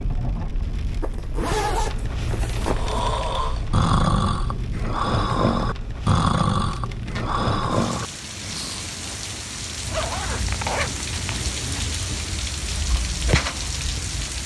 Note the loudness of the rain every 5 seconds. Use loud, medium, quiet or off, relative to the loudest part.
medium, medium, loud.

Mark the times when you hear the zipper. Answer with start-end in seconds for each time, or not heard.
1.0-3.0, 6.7-7.3, 9.8-11.8.